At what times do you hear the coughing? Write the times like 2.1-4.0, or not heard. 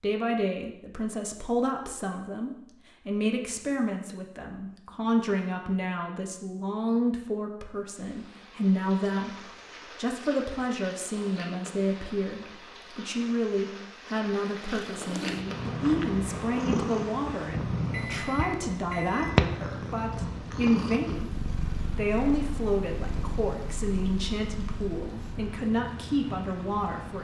not heard.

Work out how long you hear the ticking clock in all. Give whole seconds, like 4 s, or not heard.
not heard.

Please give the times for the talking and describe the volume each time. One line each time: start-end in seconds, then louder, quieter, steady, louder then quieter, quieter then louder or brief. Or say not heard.
0.0-27.2 steady.